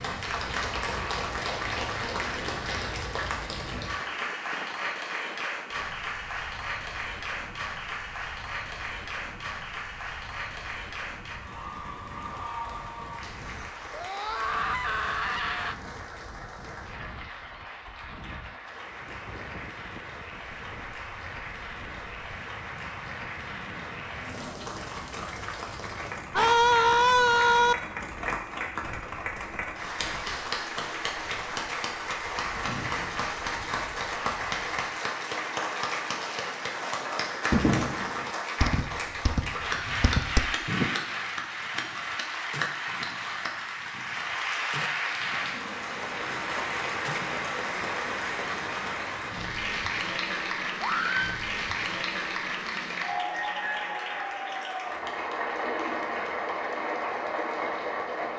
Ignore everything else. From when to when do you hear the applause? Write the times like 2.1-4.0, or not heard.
0.0-58.3.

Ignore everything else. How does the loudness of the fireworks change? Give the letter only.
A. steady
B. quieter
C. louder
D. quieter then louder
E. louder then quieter
B.